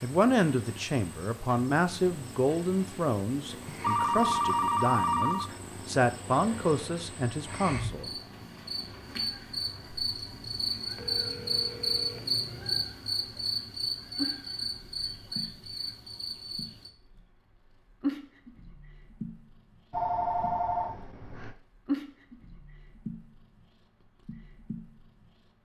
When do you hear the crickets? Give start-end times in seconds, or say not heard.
0.0-16.9.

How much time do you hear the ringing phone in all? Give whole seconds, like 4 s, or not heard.
5 s.